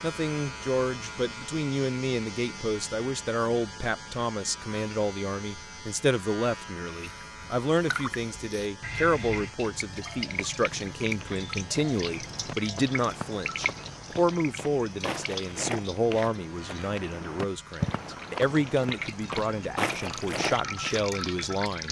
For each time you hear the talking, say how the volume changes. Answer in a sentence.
The talking can be heard from 0.0 to 21.8 s, at a steady volume.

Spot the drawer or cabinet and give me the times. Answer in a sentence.
You can't hear the drawer or cabinet here.